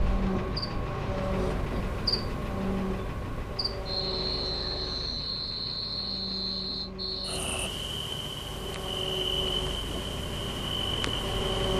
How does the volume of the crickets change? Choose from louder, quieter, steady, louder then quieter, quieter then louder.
steady.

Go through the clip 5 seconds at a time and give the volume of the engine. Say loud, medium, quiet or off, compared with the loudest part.
loud, medium, loud.